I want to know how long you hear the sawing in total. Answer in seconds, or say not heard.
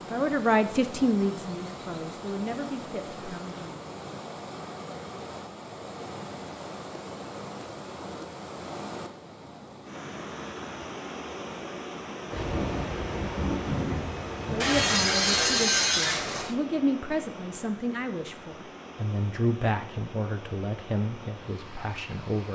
2 s.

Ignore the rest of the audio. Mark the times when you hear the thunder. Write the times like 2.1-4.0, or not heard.
12.3-15.7.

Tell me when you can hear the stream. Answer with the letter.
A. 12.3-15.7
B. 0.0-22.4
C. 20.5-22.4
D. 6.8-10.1
B.